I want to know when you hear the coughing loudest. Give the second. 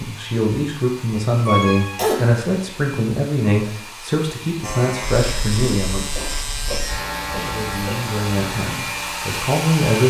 2 s.